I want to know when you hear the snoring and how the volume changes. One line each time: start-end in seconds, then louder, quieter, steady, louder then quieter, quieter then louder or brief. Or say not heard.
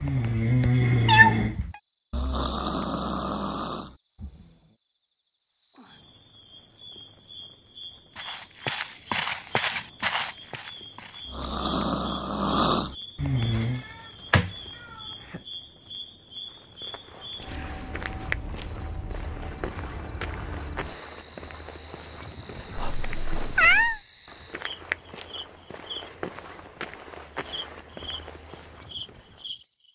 0.0-4.5 quieter
11.2-13.8 brief.